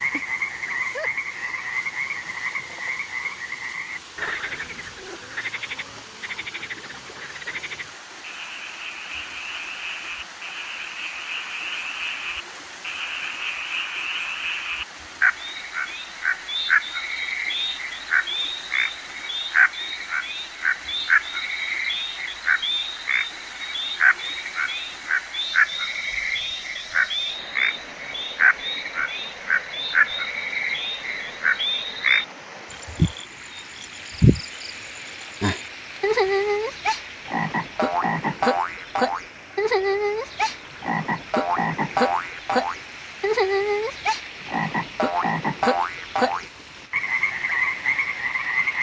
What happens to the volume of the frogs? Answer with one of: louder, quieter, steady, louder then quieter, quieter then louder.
louder.